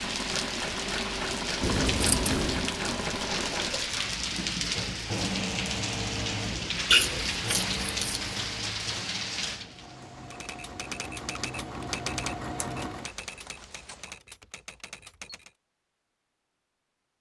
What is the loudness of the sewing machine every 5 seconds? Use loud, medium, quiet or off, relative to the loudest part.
loud, loud, loud, off.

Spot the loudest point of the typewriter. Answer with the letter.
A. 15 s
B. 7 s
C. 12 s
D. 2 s
C.